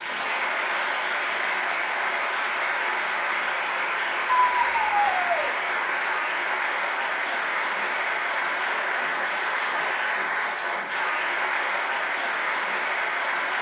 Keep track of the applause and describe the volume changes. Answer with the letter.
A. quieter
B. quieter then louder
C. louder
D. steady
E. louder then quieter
D.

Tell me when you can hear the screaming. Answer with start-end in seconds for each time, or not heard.
4.3-5.5.